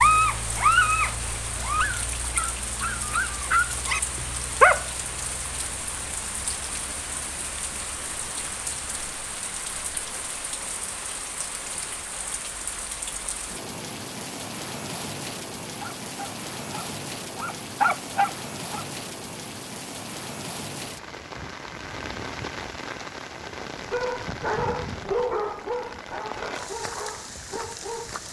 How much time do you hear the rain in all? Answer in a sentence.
You can hear the rain for 28 seconds altogether.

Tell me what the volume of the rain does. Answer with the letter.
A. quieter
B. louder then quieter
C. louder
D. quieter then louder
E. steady
E.